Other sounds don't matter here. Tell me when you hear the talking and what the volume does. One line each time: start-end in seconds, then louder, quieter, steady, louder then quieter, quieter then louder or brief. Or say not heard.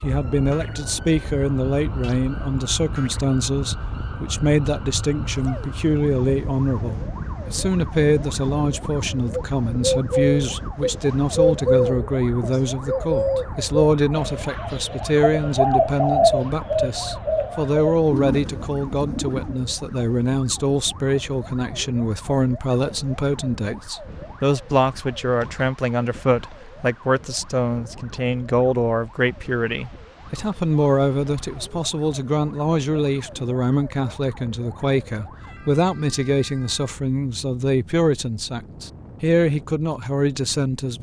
0.0-40.9 steady.